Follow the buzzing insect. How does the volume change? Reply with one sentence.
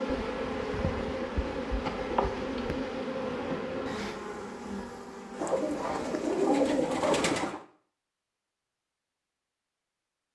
The loudness of the buzzing insect goes down.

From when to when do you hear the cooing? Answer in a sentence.
The cooing can be heard from 0.1 to 2.9 s and from 5.3 to 7.6 s.